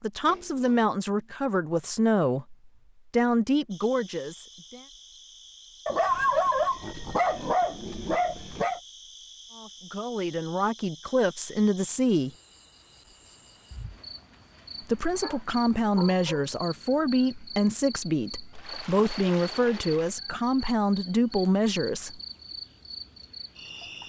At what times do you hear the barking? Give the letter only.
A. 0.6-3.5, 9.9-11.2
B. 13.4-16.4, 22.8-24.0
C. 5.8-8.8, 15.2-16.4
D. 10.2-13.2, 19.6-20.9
C.